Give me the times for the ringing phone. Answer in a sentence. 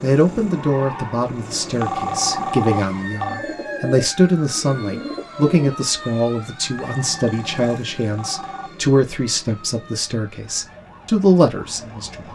You can hear the ringing phone from 1.8 to 3.5 s and from 6.8 to 8.7 s.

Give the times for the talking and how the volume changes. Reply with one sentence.
The talking can be heard from 0.0 to 12.3 s, at a steady volume.